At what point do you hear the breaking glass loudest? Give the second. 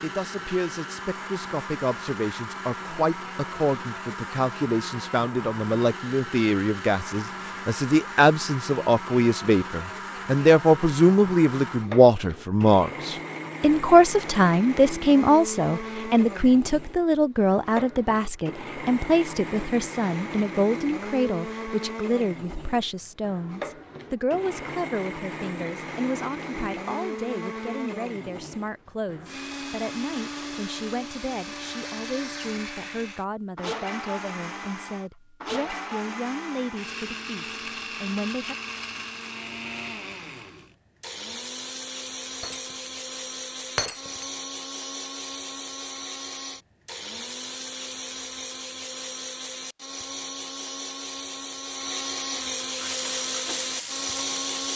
44 s.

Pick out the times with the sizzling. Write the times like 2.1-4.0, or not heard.
52.8-54.7.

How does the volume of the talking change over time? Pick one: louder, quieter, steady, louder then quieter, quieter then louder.
louder then quieter.